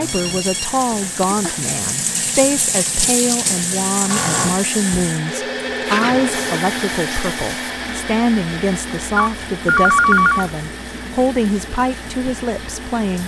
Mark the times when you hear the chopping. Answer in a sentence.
You can't hear the chopping here.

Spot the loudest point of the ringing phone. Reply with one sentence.
The volume of the ringing phone peaks at 10 seconds.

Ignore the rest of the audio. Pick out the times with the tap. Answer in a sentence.
The tap can be heard from 0.0 to 13.2 s.